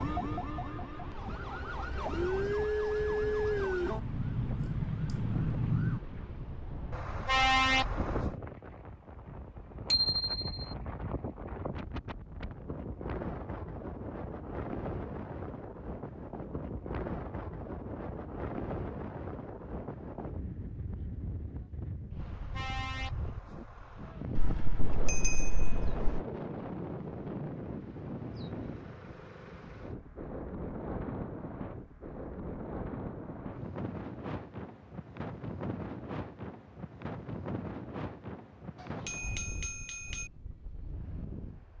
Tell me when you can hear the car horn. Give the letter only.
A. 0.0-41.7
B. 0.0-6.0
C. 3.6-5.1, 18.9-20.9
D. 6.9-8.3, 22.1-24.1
D.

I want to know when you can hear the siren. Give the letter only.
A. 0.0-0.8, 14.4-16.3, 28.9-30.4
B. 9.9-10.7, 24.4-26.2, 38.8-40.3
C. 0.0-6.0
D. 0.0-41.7
C.